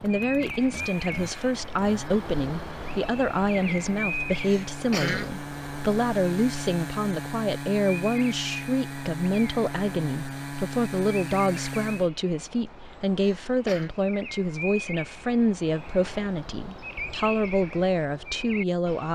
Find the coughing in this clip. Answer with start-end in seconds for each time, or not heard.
4.5-5.3, 13.2-13.9.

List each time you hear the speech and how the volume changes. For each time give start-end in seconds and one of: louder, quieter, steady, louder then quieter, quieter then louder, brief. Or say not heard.
0.0-19.1 steady.